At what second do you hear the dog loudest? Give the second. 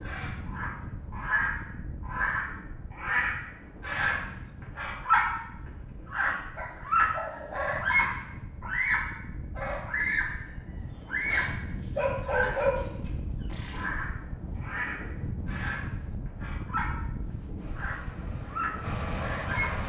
13 s.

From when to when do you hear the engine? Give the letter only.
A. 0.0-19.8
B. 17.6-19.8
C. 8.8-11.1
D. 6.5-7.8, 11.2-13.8
B.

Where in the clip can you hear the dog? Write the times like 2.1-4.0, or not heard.
6.5-7.8, 11.2-13.8.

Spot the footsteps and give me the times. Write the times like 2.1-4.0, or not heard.
not heard.